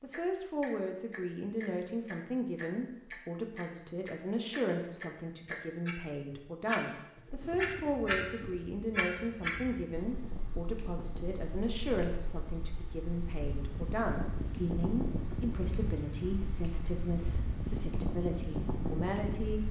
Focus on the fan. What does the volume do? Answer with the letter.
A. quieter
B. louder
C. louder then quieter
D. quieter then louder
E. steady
B.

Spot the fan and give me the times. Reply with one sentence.
The fan can be heard from 7.4 to 19.6 s.